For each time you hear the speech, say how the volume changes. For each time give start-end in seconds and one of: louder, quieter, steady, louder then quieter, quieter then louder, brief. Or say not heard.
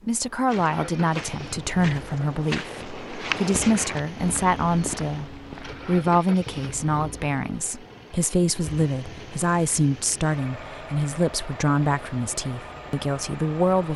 0.1-13.9 steady.